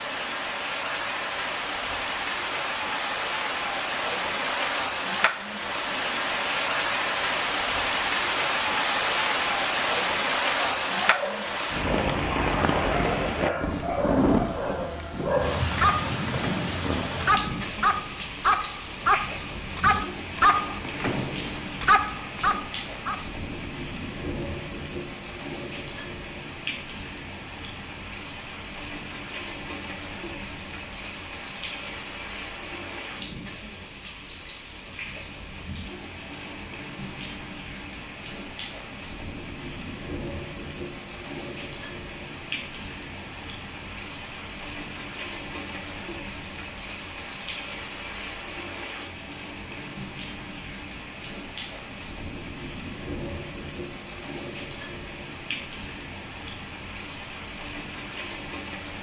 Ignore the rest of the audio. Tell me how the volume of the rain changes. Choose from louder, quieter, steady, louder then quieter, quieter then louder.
quieter.